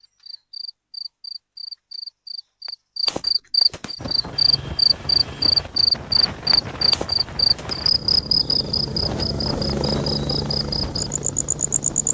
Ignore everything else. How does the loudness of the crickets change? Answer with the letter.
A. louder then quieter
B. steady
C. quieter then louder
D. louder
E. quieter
A.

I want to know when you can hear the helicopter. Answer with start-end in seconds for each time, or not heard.
4.0-12.0.